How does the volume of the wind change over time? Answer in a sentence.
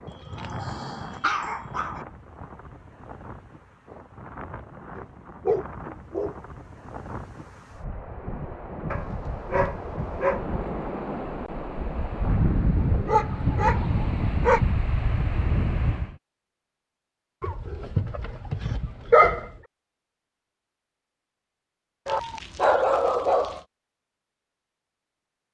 The volume of the wind goes up.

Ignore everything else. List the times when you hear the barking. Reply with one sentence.
The barking can be heard from 0.1 to 2.0 s, from 5.0 to 6.3 s, from 8.9 to 10.4 s, from 13.1 to 14.6 s, from 17.4 to 19.5 s and from 22.1 to 23.6 s.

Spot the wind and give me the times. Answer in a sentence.
The wind can be heard from 0.0 to 16.1 s.